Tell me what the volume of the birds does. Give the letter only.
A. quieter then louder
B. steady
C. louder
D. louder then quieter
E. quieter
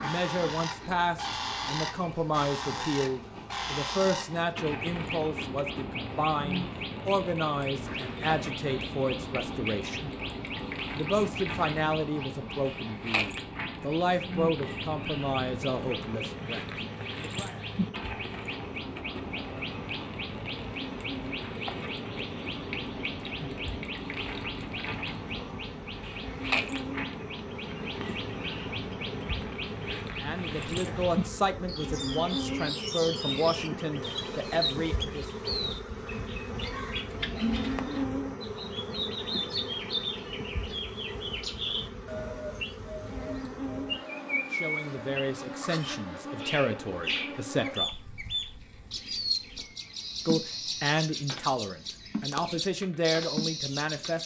B.